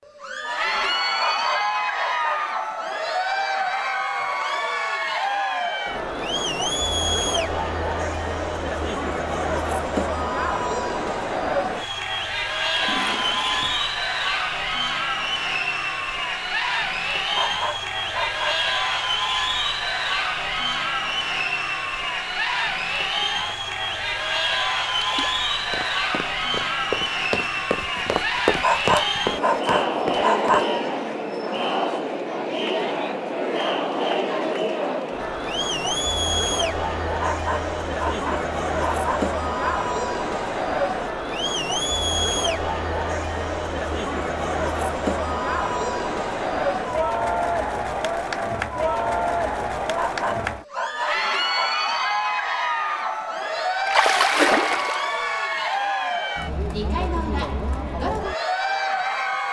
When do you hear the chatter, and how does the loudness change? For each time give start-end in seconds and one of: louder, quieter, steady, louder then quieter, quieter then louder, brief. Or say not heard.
0.1-59.4 steady.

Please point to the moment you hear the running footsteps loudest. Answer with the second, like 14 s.
28 s.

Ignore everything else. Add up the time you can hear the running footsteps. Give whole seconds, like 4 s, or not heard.
5 s.